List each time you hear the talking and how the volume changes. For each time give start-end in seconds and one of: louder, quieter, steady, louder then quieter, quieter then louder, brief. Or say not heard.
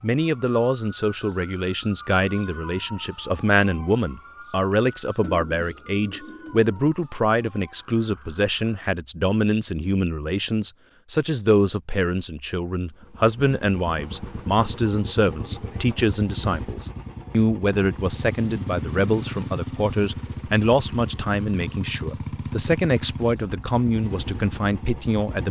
0.0-25.4 steady.